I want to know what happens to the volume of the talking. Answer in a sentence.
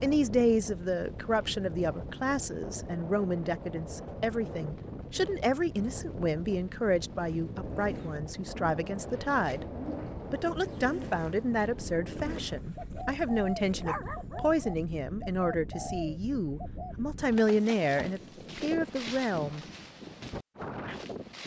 The loudness of the talking stays about the same.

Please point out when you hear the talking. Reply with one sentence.
You can hear the talking from 0.0 to 9.7 s and from 10.3 to 19.6 s.